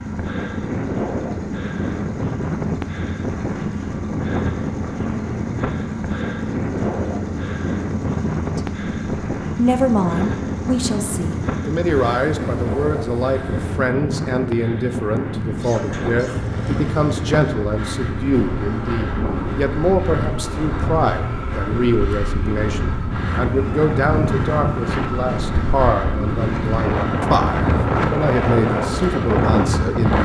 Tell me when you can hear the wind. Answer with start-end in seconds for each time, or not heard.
0.0-30.1.